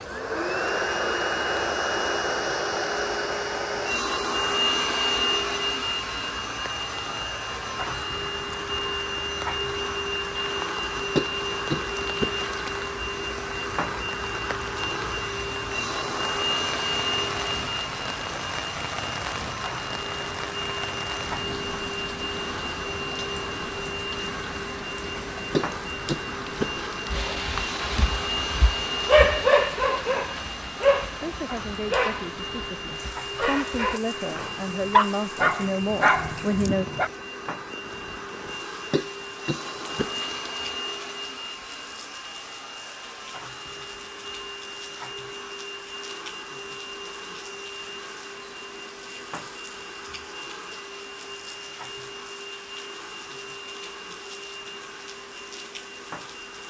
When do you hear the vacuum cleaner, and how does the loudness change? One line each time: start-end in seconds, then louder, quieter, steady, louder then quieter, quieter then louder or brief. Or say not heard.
0.0-56.6 quieter.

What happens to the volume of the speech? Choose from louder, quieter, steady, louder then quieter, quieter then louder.
louder.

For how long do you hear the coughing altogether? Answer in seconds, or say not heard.
5 s.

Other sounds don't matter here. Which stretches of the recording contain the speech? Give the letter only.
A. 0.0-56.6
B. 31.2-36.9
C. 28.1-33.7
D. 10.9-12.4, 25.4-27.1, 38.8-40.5
B.